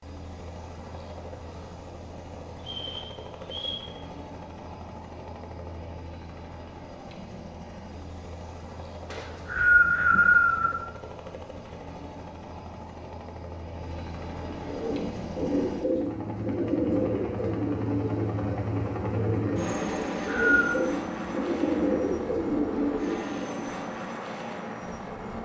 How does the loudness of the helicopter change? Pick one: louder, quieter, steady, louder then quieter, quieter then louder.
louder.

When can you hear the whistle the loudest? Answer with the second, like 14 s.
10 s.